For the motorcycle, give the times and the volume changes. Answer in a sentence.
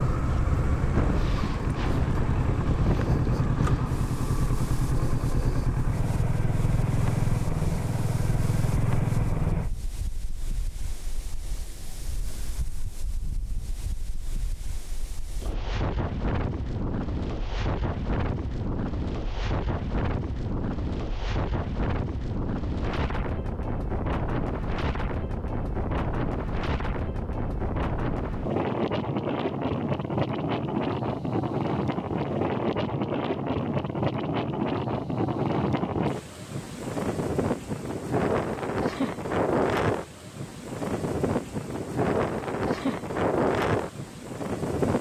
The motorcycle can be heard from 0.0 to 9.7 s, at a steady volume.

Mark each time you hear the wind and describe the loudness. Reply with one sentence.
You can hear the wind from 0.0 to 44.9 s, getting louder.